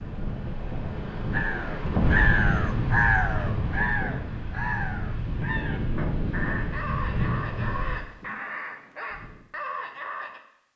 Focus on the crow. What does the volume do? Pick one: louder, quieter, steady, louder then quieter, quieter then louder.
quieter.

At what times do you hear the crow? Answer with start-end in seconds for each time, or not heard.
1.3-10.4.